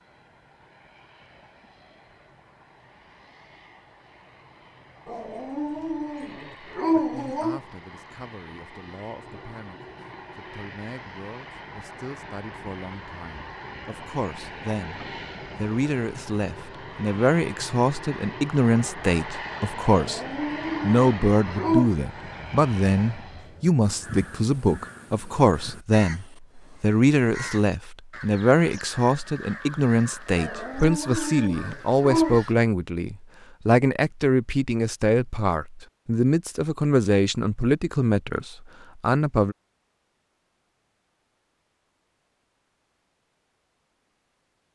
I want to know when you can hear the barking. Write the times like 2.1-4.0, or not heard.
5.0-7.6, 19.9-21.9, 30.4-32.4.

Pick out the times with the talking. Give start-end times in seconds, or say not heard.
6.9-20.2, 20.8-39.5.